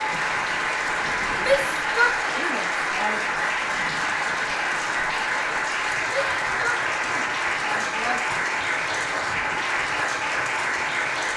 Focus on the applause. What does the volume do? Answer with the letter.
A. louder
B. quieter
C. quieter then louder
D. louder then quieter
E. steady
E.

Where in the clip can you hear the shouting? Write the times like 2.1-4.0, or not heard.
1.4-3.2, 6.0-8.4.